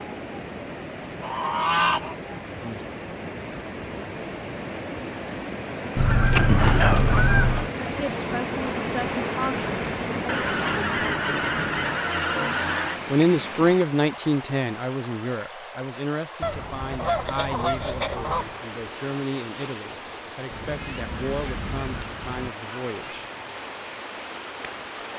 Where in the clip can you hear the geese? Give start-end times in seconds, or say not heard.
1.2-2.8, 6.0-7.7, 10.2-13.0, 16.4-18.6, 20.5-22.5.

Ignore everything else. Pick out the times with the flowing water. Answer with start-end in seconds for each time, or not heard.
0.0-25.1.